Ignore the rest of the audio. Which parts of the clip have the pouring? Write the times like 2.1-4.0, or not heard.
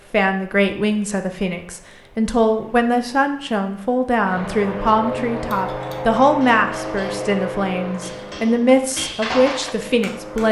not heard.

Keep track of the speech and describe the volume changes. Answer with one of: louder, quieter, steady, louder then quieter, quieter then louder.
steady.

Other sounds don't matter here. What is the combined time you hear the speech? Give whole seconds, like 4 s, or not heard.
10 s.